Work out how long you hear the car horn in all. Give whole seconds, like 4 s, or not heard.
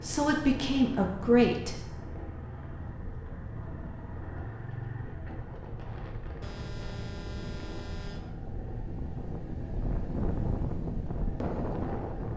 2 s.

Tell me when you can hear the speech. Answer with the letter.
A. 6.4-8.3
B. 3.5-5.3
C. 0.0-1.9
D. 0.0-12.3
C.